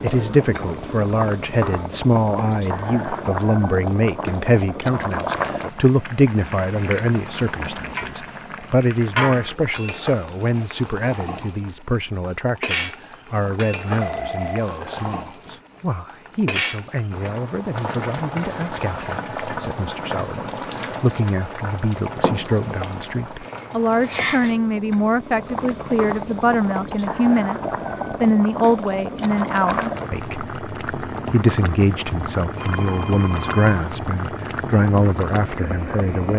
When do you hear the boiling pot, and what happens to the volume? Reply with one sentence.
You can hear the boiling pot from 0.0 to 36.3 s, at a steady volume.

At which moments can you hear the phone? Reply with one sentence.
The phone can be heard from 14.0 to 15.6 s and from 32.5 to 34.0 s.